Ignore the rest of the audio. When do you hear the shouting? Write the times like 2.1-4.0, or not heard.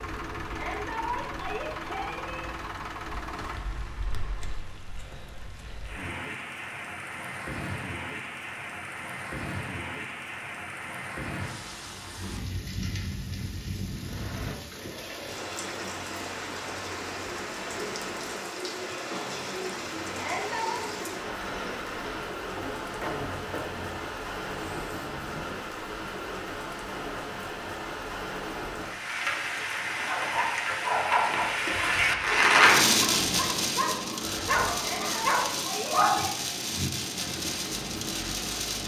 0.5-2.5, 20.1-20.8, 34.7-36.4.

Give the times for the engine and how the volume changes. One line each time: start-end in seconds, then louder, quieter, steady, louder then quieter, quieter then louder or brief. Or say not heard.
0.0-4.8 quieter
13.9-25.6 steady
37.1-38.6 brief.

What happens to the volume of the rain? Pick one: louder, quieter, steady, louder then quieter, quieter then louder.
louder.